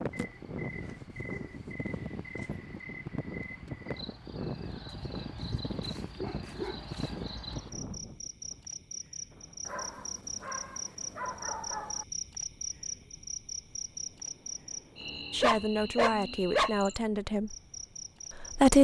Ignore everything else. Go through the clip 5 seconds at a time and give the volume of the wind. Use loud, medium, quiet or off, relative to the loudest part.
loud, loud, quiet, quiet.